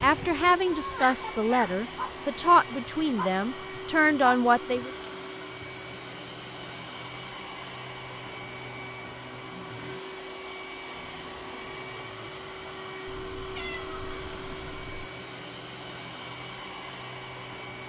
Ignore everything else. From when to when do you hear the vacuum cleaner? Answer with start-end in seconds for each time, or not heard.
0.0-17.8.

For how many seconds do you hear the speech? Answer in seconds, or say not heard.
5 s.